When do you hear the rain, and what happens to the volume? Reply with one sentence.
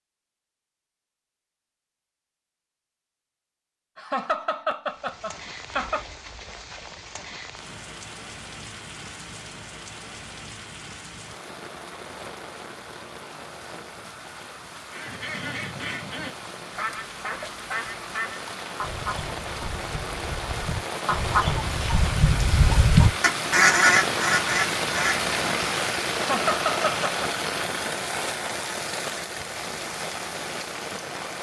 You can hear the rain from 4.8 to 31.3 s, getting louder.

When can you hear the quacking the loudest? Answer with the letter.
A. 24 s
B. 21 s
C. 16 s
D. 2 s
A.